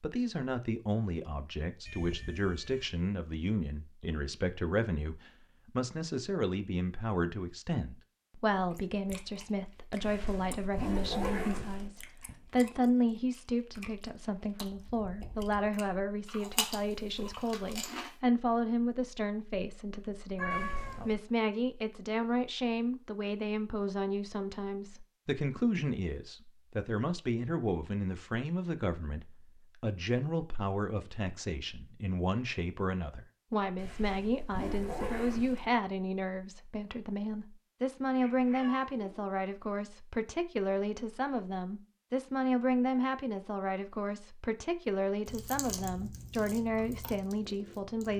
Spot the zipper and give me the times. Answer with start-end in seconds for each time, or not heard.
10.0-11.9, 20.5-21.2, 33.8-35.6.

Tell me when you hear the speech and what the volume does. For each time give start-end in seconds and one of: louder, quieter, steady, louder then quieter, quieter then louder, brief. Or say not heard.
0.0-48.1 steady.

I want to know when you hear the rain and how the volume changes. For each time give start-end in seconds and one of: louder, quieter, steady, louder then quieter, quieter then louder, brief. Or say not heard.
not heard.